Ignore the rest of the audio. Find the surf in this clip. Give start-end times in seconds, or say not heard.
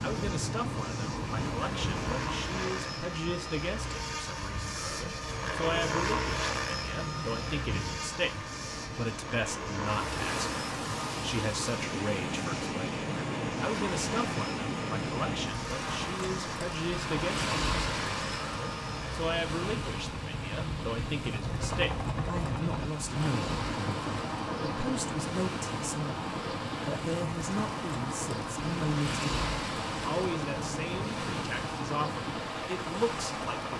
0.0-33.7.